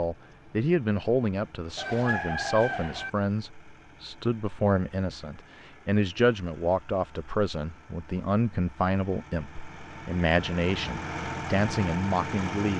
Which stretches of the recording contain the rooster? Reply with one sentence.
The rooster can be heard from 1.8 to 3.1 s.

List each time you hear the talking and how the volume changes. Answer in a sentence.
The talking can be heard from 0.0 to 12.7 s, at a steady volume.